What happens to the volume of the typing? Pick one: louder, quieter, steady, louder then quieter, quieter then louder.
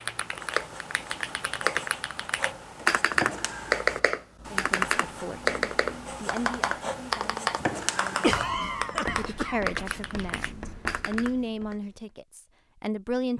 louder then quieter.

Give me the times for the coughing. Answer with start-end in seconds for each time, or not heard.
8.2-9.6.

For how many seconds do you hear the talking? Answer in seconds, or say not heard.
9 s.